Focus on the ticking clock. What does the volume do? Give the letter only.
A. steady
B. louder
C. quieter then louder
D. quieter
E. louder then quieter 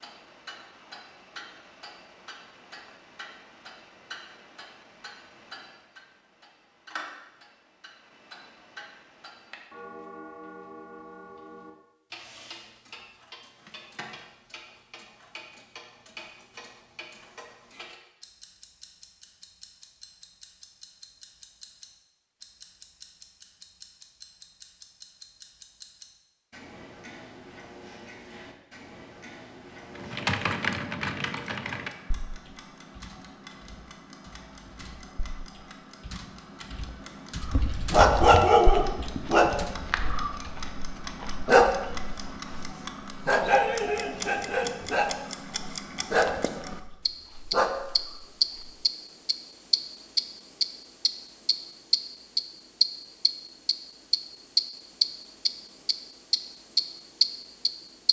B.